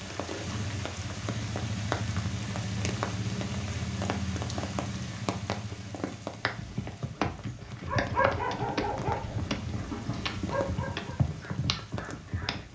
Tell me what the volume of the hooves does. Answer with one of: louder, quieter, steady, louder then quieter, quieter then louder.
steady.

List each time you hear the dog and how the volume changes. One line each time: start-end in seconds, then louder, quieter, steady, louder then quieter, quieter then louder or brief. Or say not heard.
7.8-12.6 quieter.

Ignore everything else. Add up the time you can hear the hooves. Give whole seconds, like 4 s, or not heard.
6 s.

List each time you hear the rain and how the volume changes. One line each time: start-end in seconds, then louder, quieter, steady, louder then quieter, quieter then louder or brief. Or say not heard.
0.0-12.6 quieter.